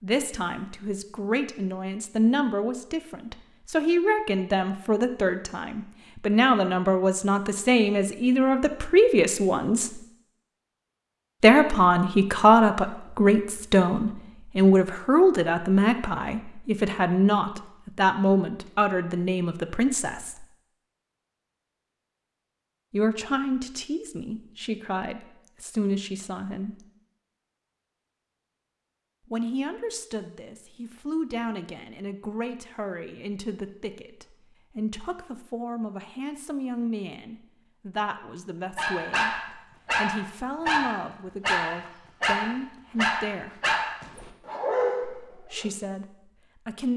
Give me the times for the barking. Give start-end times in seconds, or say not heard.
38.8-45.7.